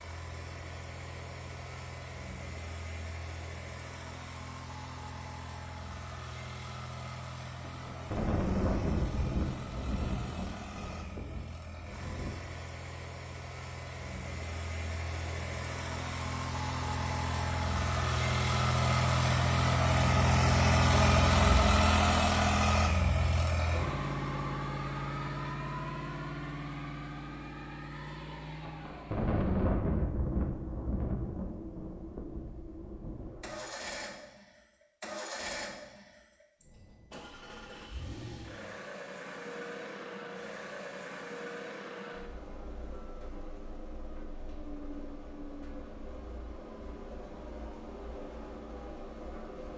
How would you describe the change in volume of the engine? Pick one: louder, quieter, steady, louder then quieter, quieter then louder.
louder then quieter.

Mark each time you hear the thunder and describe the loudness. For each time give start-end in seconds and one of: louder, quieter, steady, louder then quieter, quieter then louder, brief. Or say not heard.
7.6-12.3 quieter
28.6-33.3 quieter.